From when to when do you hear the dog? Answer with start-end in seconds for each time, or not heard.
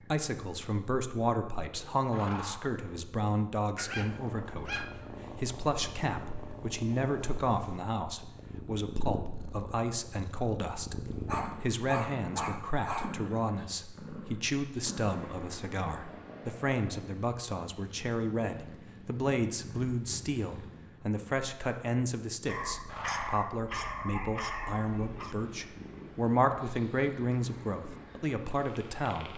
3.8-5.5, 11.2-13.2, 22.4-25.4.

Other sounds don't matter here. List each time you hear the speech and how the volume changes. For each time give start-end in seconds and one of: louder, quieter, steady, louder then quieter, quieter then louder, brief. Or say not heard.
0.1-29.3 steady.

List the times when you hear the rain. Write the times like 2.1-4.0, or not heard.
not heard.